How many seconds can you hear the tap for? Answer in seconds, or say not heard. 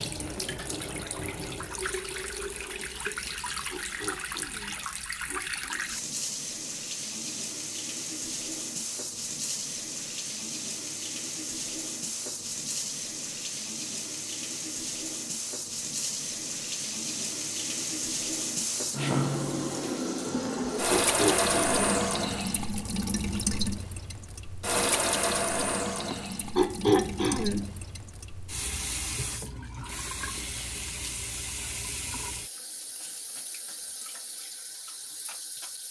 36 s.